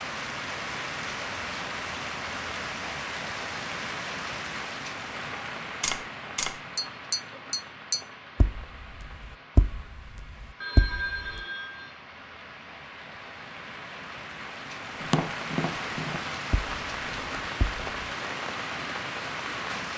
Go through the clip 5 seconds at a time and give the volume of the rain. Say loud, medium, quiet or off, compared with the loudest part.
loud, medium, medium, loud.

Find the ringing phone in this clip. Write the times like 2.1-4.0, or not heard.
10.6-11.9.